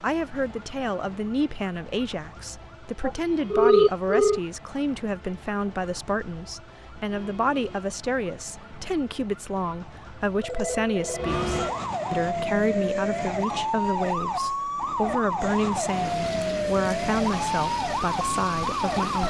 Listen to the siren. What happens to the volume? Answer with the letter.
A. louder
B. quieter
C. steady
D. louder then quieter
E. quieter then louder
A.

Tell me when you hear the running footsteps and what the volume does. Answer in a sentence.
You can't hear the running footsteps here.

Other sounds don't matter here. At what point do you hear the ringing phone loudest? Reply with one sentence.
The volume of the ringing phone peaks at 4 seconds.